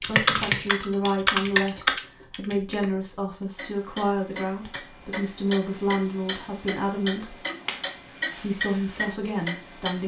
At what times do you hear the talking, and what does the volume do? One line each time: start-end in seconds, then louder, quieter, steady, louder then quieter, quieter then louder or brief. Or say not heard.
0.0-7.3 steady
8.3-10.0 brief.